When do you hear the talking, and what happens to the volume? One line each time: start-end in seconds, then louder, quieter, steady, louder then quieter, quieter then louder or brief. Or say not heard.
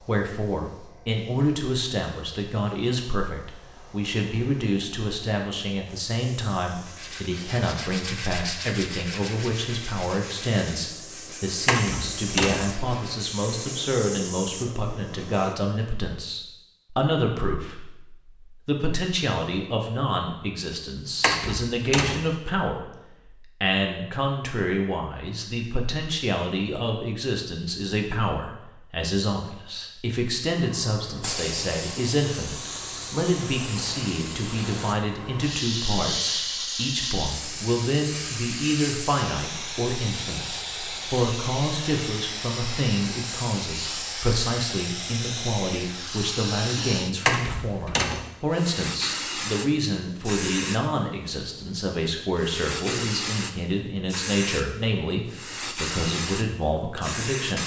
0.0-57.6 steady.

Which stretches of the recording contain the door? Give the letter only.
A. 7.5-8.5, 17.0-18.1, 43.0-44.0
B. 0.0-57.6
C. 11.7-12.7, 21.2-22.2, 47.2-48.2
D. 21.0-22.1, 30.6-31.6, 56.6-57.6
C.